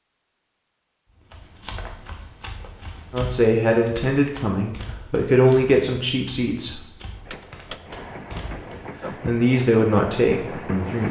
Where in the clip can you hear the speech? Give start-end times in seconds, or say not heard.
3.1-6.8, 9.1-11.0.